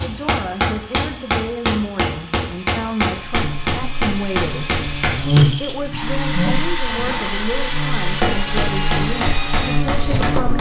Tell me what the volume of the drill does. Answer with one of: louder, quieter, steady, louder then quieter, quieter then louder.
louder.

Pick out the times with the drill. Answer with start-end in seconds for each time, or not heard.
0.0-10.5.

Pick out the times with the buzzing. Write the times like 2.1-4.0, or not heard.
3.2-10.5.